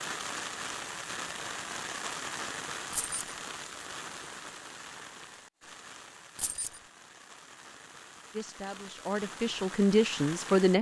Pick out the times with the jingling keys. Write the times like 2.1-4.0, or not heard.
2.9-3.4, 6.3-6.8.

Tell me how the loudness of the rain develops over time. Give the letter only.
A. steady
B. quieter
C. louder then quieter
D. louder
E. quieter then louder
E.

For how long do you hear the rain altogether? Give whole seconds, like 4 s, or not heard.
11 s.